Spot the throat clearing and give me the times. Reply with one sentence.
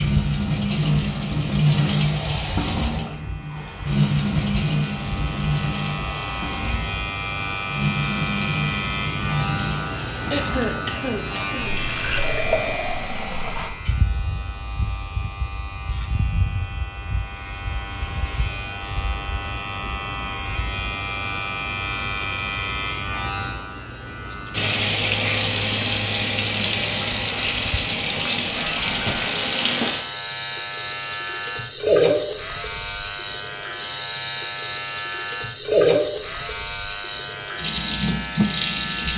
The throat clearing can be heard from 10.3 to 11.8 s.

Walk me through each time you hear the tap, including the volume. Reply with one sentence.
The tap can be heard from 0.0 to 13.7 s, getting quieter; and from 24.5 to 39.1 s, at a steady volume.